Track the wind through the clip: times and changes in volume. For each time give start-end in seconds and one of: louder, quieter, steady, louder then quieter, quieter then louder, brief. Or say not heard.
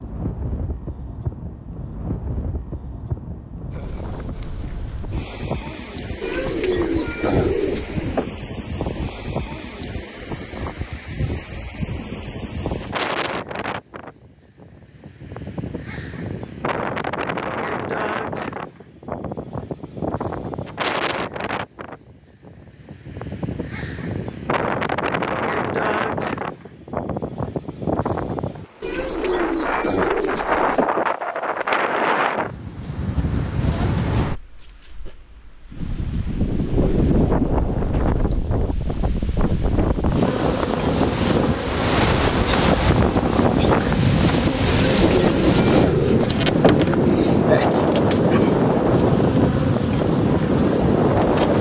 0.0-51.5 louder.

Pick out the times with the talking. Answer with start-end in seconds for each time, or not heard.
not heard.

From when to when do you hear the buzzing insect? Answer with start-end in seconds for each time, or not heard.
40.2-51.5.